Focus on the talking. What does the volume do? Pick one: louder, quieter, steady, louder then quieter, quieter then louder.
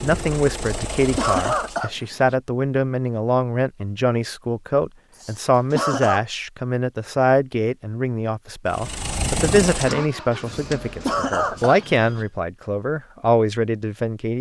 steady.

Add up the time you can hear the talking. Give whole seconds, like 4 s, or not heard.
14 s.